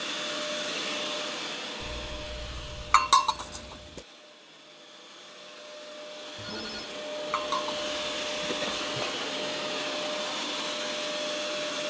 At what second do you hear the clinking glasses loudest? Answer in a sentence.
The volume of the clinking glasses peaks at 3 seconds.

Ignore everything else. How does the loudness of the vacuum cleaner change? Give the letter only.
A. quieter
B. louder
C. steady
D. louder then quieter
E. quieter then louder
E.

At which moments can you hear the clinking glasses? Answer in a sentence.
You can hear the clinking glasses from 2.9 to 4.0 s and from 7.3 to 9.2 s.